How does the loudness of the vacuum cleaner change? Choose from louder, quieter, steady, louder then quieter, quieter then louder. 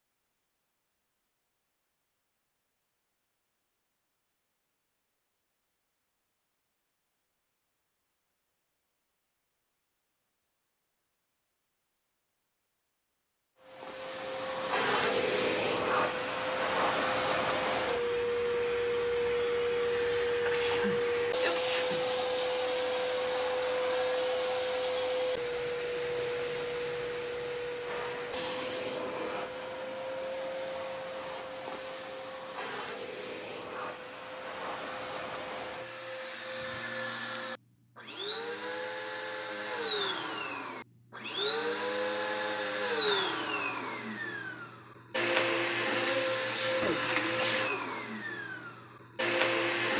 quieter then louder.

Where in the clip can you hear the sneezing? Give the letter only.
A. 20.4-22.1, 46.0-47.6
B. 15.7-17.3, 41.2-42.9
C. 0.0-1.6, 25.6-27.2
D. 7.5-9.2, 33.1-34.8
A.